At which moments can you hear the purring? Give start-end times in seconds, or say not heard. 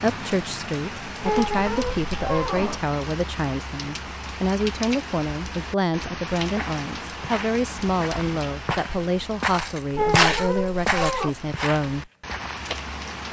not heard.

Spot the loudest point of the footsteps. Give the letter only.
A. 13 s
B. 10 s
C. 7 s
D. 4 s
B.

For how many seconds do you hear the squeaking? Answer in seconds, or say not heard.
3 s.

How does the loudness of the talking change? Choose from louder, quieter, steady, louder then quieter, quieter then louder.
steady.